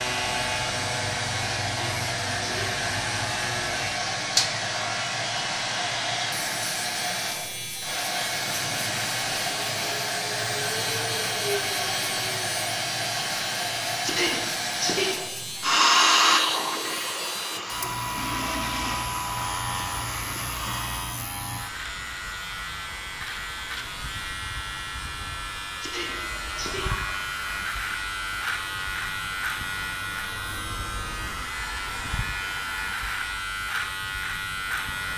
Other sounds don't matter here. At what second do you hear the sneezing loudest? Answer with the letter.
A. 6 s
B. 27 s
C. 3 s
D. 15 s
D.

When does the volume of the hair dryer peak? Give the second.
16 s.